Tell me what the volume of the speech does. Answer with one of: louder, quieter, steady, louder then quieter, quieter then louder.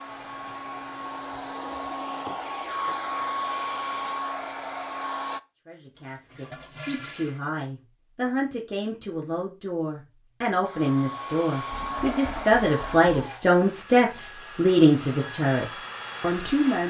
louder.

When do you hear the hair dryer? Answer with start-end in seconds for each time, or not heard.
0.0-5.4, 10.6-16.8.